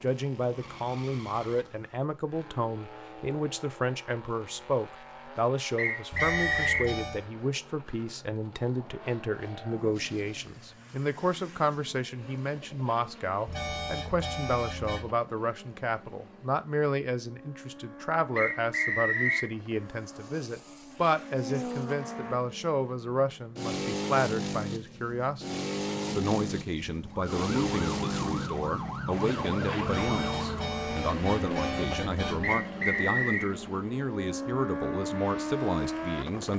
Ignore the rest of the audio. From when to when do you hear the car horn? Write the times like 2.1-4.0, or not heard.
6.1-7.2, 13.4-15.2, 29.9-32.6.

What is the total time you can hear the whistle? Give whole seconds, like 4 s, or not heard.
3 s.